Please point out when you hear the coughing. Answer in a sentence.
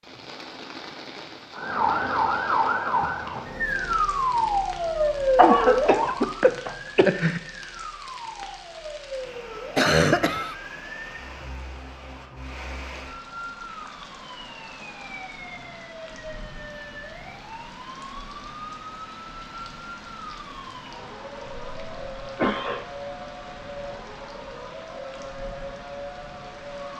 You can hear the coughing from 5.3 to 7.4 s, from 9.8 to 10.6 s and from 21.4 to 22.9 s.